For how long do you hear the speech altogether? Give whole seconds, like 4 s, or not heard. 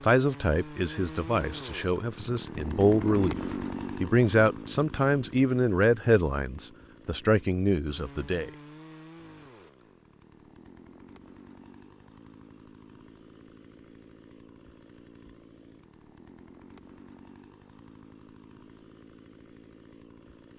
8 s.